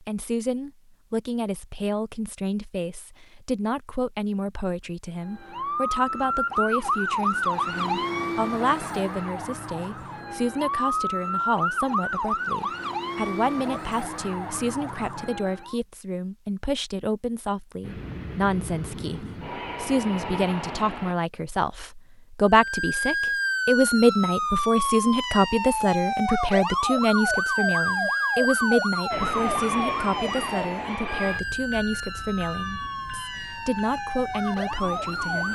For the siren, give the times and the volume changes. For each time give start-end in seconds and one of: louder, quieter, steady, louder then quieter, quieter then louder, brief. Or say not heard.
5.2-15.8 quieter
22.4-35.5 quieter.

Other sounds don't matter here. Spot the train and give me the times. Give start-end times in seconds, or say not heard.
17.8-21.1, 29.1-35.5.